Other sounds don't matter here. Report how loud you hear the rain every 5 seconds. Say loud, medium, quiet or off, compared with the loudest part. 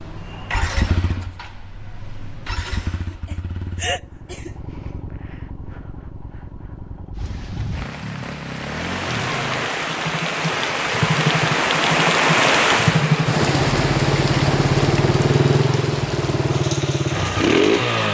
off, medium, loud, medium.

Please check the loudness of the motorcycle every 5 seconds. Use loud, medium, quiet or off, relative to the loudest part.
quiet, quiet, loud, loud.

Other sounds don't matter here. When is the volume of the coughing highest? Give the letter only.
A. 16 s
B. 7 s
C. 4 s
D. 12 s
C.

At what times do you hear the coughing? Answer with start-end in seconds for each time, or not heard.
2.6-4.5.